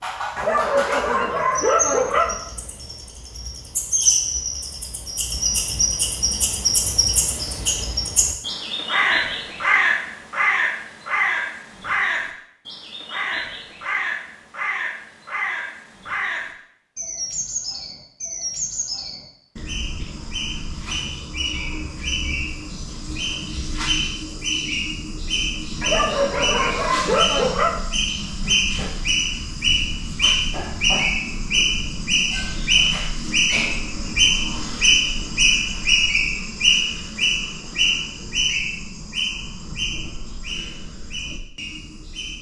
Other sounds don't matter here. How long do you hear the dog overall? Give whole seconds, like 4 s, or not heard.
4 s.